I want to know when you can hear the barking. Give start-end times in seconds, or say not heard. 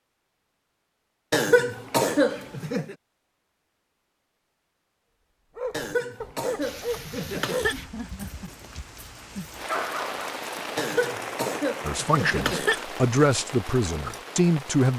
5.5-10.3.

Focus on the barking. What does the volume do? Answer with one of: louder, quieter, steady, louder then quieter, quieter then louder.
quieter then louder.